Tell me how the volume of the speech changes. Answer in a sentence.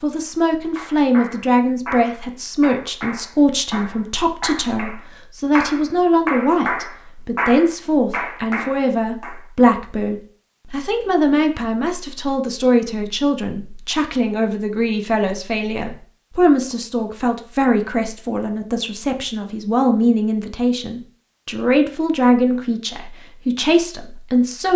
The volume of the speech stays about the same.